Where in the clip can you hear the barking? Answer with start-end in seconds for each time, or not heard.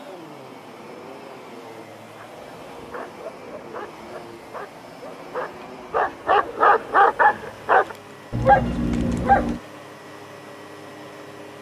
2.1-9.6.